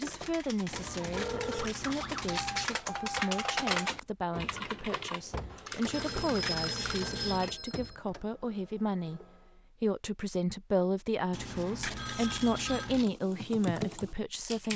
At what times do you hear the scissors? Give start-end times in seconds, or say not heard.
0.7-2.7, 5.9-7.5, 11.3-13.1.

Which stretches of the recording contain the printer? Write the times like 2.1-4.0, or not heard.
0.0-9.6.